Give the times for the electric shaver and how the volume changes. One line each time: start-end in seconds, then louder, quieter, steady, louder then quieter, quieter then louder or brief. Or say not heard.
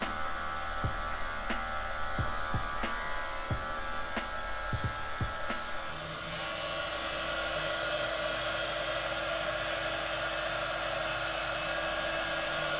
0.0-12.7 quieter.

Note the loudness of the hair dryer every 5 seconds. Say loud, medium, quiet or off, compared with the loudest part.
medium, loud, loud.